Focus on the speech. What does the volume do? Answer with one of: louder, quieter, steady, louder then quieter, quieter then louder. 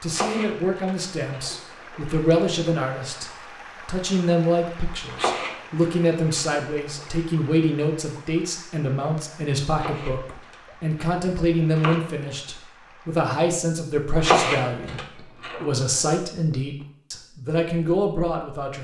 steady.